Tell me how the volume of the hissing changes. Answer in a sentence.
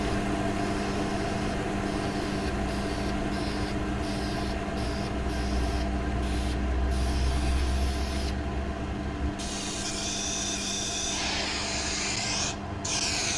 The volume of the hissing goes up.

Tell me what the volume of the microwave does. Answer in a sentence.
The volume of the microwave goes down.